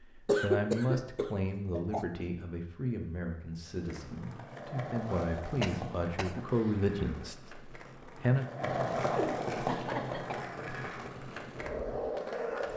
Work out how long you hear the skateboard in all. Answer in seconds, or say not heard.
9 s.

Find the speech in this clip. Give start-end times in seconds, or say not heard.
0.0-8.4.